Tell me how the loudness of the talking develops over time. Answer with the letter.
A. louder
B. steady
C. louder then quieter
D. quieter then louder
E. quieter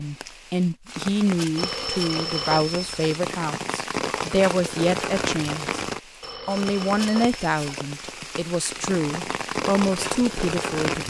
B.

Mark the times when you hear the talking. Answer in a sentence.
The talking can be heard from 0.0 to 5.8 s and from 6.5 to 11.0 s.